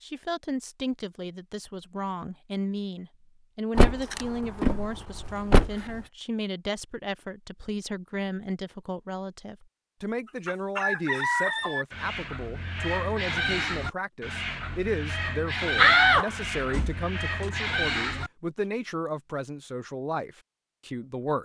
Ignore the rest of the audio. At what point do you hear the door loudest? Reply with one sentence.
The volume of the door peaks at 16 seconds.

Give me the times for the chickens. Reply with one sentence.
The chickens can be heard from 10.2 to 18.3 s.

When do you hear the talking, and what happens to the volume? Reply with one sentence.
You can hear the talking from 0.0 to 21.3 s, at a steady volume.